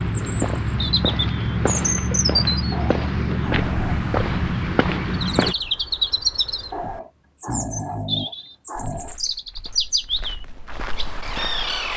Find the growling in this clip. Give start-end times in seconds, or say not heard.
2.7-4.0, 6.7-9.2.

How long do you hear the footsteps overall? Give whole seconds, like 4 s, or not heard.
9 s.